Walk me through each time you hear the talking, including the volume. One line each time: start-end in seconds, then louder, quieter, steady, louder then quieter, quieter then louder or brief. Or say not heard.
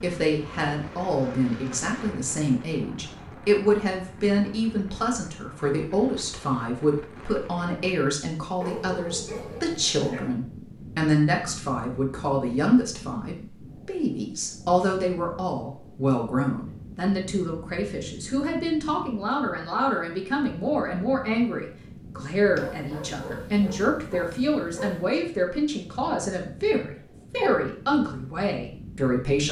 0.0-29.4 steady.